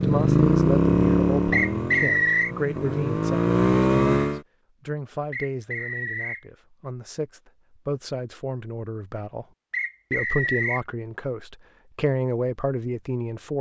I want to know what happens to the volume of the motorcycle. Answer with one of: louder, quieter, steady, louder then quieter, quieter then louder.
quieter then louder.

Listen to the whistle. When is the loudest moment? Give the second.
2 s.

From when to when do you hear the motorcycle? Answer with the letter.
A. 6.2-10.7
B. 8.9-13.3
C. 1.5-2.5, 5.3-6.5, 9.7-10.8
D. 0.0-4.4
D.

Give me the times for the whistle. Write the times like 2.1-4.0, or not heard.
1.5-2.5, 5.3-6.5, 9.7-10.8.